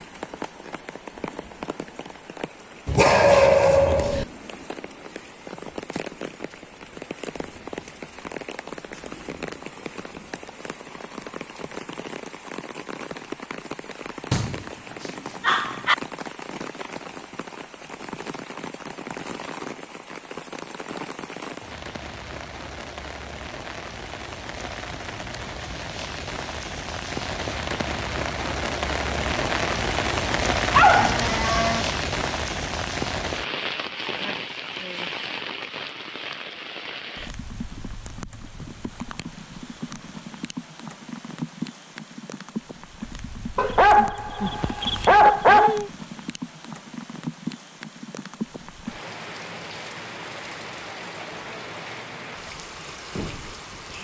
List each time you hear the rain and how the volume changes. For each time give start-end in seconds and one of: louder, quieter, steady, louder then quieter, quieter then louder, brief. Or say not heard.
0.0-53.9 louder then quieter.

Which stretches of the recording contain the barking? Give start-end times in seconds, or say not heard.
2.9-4.2, 14.3-15.9, 30.7-31.9, 43.5-45.9.